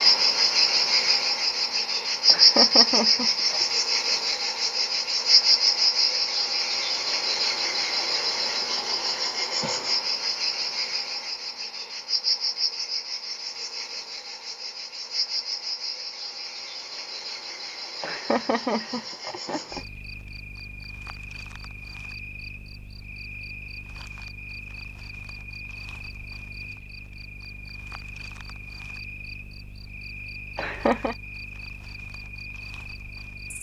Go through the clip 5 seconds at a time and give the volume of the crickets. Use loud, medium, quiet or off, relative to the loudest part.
loud, loud, medium, quiet, quiet, quiet, quiet.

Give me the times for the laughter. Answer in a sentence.
The laughter can be heard from 2.2 to 3.6 s, from 18.0 to 19.9 s and from 30.6 to 31.1 s.